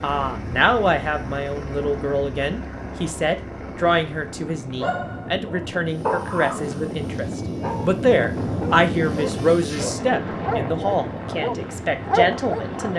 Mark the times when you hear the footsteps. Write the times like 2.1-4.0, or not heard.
not heard.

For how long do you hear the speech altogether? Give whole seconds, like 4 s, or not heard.
13 s.